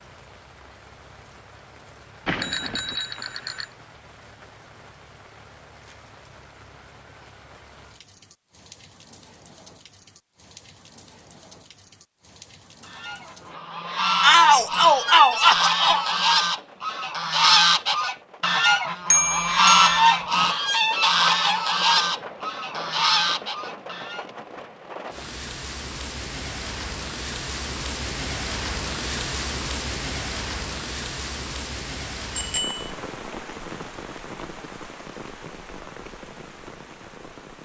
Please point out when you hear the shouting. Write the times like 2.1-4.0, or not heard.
14.2-16.1.